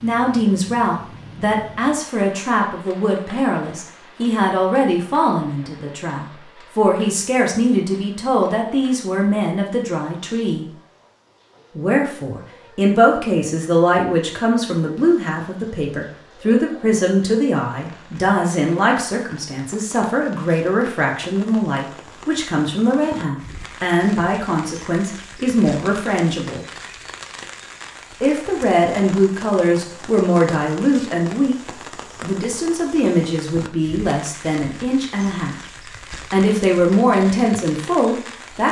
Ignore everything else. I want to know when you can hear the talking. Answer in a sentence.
The talking can be heard from 0.0 to 10.7 s, from 11.8 to 26.6 s, from 28.2 to 35.5 s and from 36.3 to 38.6 s.